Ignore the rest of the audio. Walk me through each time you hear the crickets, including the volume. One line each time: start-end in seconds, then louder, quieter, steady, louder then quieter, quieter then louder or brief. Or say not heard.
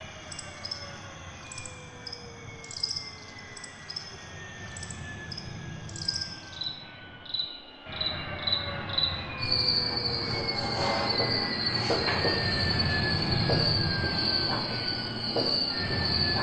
0.0-16.3 louder.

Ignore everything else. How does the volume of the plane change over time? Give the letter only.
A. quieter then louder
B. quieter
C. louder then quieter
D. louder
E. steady
D.